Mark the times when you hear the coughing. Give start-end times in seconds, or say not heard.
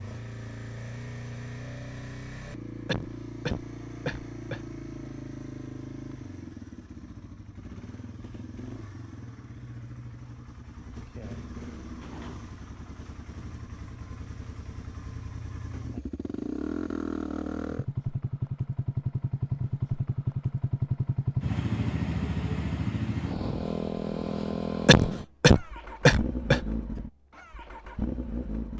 2.9-4.6, 24.9-26.6.